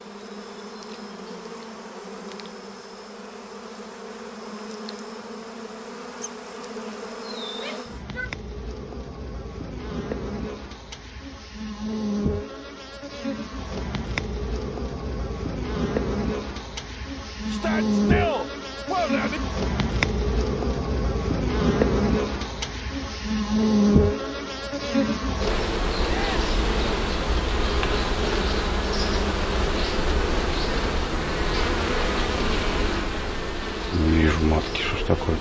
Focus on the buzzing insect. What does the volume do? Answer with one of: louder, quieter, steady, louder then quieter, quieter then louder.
louder.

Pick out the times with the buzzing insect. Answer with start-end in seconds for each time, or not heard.
0.0-35.3.